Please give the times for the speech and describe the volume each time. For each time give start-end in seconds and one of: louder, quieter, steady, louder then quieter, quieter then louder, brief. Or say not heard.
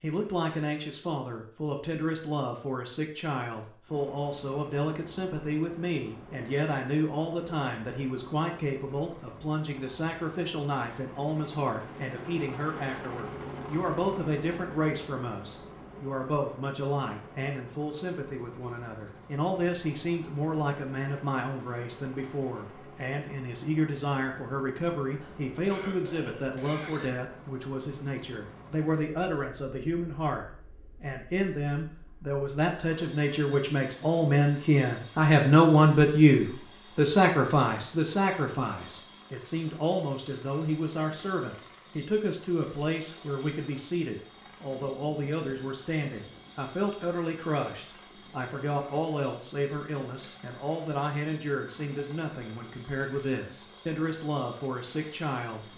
0.0-55.7 louder then quieter.